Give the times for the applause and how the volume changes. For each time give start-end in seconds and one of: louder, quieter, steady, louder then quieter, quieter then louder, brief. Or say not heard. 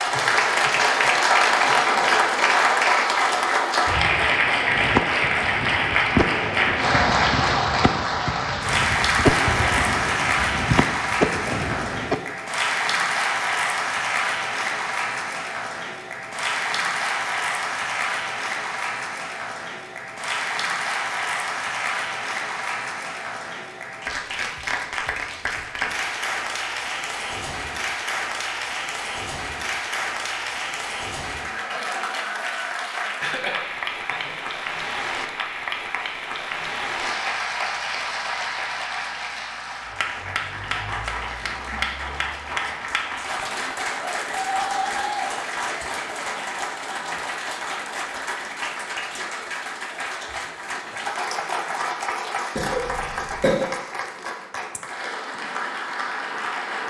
0.0-56.8 quieter.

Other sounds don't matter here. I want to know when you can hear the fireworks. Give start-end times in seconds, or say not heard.
4.7-12.2.